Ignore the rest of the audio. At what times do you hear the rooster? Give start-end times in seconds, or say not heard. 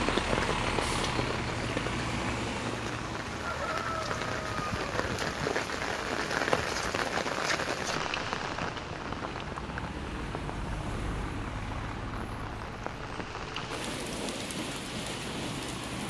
3.5-5.5.